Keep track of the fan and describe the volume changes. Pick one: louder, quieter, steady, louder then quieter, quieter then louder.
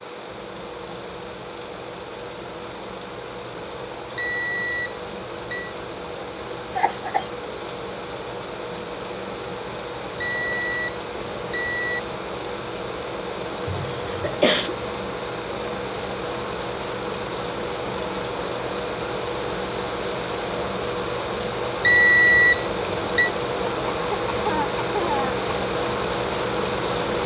louder.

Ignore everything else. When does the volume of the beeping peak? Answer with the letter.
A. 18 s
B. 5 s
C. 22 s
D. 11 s
C.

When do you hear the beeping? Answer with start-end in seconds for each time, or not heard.
4.2-5.8, 10.2-12.0, 21.8-23.3.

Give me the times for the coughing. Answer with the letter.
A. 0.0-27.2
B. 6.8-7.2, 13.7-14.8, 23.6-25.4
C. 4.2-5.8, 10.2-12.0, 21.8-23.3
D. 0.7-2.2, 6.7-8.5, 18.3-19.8
B.